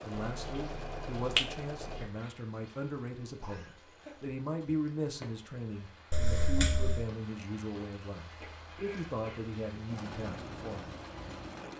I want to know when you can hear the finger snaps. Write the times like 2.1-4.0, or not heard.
0.1-2.1, 6.1-7.0.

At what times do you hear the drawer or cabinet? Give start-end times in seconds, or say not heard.
not heard.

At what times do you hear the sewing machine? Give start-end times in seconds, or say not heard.
0.0-2.0, 9.8-11.7.